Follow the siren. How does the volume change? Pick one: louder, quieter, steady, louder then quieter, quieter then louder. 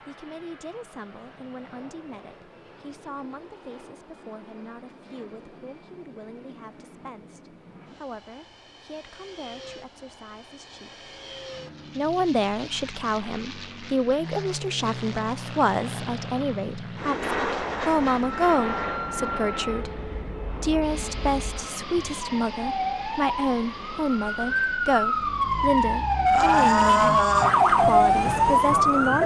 louder.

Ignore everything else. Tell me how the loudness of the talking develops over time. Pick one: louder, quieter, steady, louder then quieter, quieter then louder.
louder.